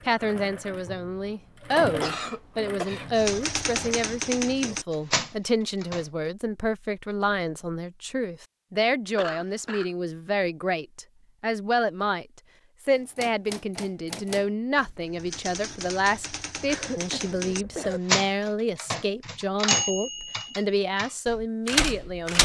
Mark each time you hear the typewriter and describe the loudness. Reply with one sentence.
You can hear the typewriter briefly from 3.1 to 6.0 s; and from 12.9 to 22.3 s, getting louder.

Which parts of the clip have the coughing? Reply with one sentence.
The coughing can be heard from 2.0 to 3.1 s, from 9.2 to 9.9 s and from 16.6 to 18.0 s.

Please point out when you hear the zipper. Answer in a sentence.
The zipper can't be heard in this clip.